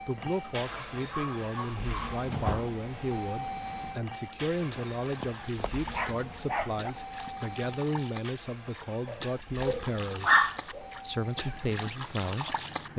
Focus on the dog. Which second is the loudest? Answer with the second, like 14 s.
10 s.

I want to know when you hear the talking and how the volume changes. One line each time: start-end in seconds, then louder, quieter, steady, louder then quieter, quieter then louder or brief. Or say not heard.
0.1-12.9 steady.